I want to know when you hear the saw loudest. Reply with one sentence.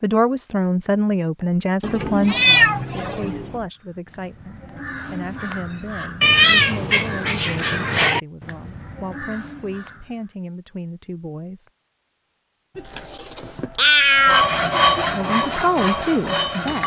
The loudest moment of the saw is at 15 seconds.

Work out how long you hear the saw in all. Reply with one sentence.
The saw can be heard for 3 seconds in total.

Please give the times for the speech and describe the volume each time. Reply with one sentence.
The speech can be heard from 0.0 to 11.7 s, getting quieter; and briefly from 14.9 to 16.8 s.